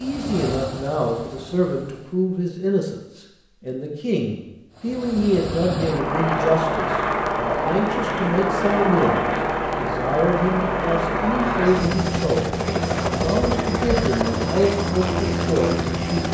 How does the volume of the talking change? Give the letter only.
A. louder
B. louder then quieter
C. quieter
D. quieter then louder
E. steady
E.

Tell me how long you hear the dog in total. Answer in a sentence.
The dog can't be heard in this clip.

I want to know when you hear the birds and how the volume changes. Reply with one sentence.
You can't hear the birds here.